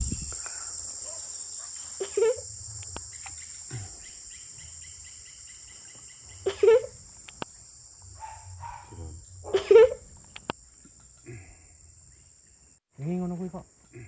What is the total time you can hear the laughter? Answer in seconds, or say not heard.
3 s.